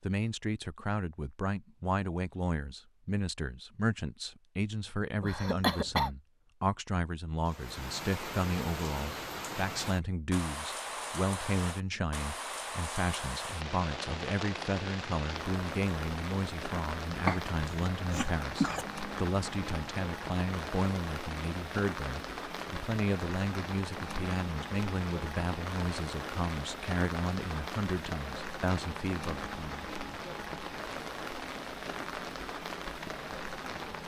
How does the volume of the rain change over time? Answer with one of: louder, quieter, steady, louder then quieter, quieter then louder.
steady.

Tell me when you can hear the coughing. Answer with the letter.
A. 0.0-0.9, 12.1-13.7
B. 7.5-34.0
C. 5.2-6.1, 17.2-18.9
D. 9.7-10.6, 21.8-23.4
C.